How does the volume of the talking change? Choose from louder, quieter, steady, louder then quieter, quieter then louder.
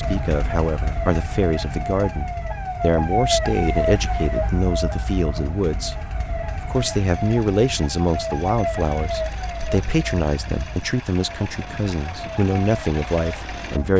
steady.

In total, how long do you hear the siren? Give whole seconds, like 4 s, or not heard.
14 s.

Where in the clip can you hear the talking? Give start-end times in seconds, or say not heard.
0.0-6.0, 6.7-13.9.